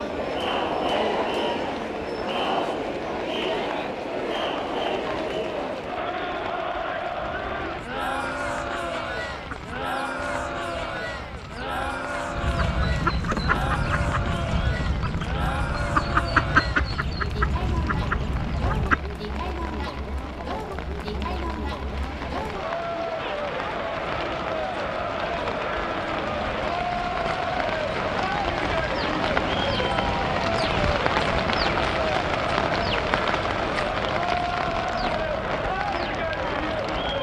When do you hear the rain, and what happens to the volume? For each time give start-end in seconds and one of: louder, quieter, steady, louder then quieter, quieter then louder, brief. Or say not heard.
0.0-37.1 louder.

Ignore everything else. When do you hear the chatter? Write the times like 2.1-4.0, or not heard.
0.0-37.1.